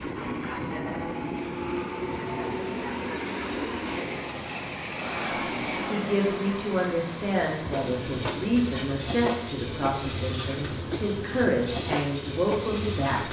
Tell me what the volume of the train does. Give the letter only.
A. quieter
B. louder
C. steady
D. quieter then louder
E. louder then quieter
C.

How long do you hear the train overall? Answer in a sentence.
You can hear the train for 13 seconds altogether.